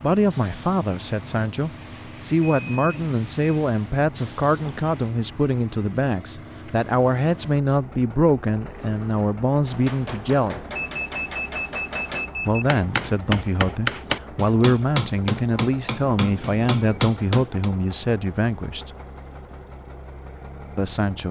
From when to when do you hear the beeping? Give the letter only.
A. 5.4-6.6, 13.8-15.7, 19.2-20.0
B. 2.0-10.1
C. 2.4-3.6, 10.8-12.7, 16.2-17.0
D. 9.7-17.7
C.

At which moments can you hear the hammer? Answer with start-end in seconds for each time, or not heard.
9.7-17.7.